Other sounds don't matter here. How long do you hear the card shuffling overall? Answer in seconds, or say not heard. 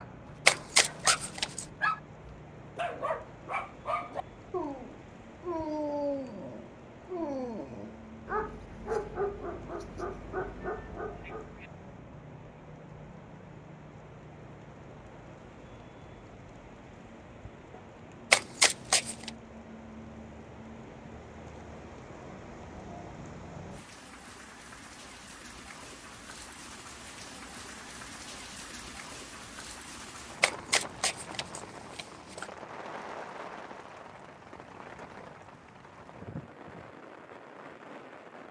4 s.